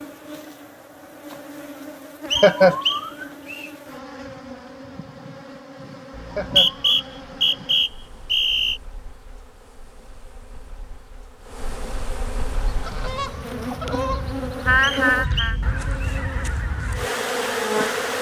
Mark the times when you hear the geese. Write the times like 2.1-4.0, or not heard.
12.4-18.1.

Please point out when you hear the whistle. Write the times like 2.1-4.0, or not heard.
2.3-3.7, 6.2-8.8, 14.8-16.2.